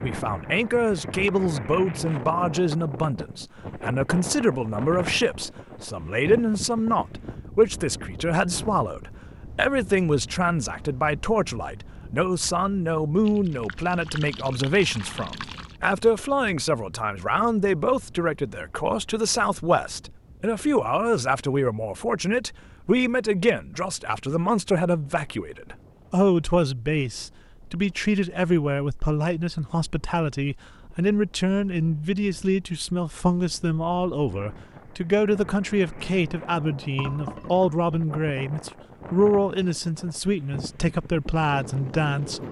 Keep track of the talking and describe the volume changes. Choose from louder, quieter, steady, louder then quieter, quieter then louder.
steady.